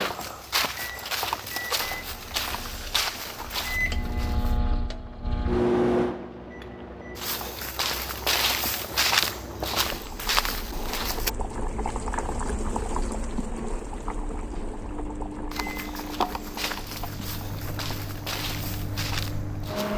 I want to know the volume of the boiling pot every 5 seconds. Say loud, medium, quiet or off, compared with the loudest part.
quiet, medium, loud, medium.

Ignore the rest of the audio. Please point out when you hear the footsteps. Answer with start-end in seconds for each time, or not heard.
0.0-4.6, 7.2-11.3, 15.5-19.9.